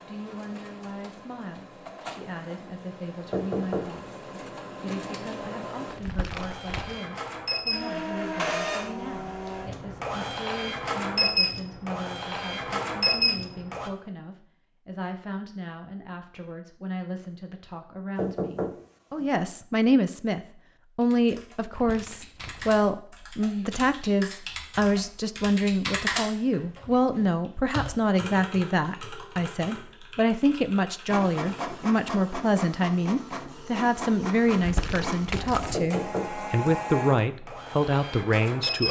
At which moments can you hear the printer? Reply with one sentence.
The printer can be heard from 0.0 to 13.9 s and from 31.1 to 38.8 s.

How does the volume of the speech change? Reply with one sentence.
The loudness of the speech goes up.